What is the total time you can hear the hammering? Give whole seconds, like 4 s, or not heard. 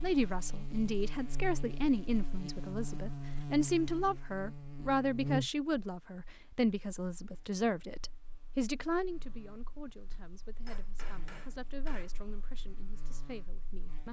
2 s.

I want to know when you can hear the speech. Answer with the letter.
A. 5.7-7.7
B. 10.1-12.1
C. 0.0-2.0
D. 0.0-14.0
D.